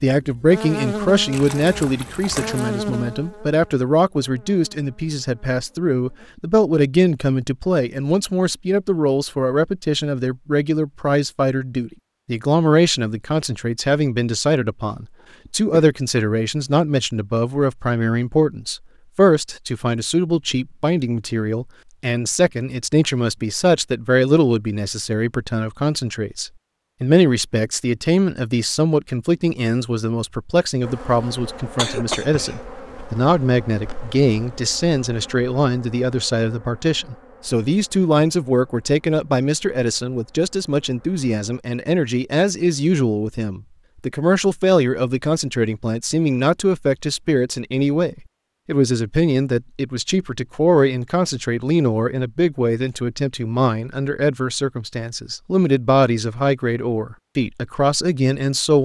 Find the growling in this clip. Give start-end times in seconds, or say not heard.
not heard.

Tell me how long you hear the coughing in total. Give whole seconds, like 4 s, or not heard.
2 s.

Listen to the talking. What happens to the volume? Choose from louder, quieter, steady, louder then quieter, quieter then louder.
steady.